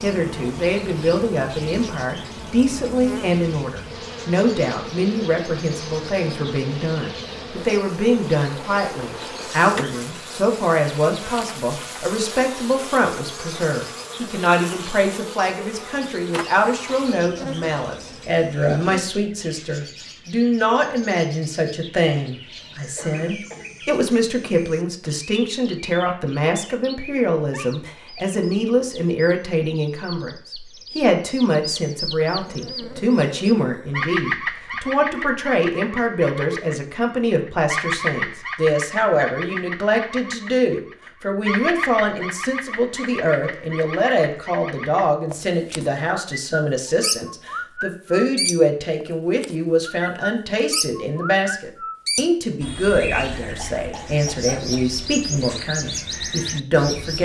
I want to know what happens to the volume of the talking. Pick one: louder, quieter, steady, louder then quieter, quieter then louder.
steady.